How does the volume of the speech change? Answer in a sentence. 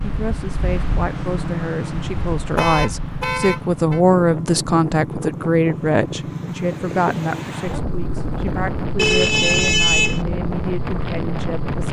The loudness of the speech goes up, then down.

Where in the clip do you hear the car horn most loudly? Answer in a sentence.
The volume of the car horn peaks at 10 seconds.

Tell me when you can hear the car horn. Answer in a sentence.
The car horn can be heard from 2.5 to 4.0 s and from 8.9 to 10.2 s.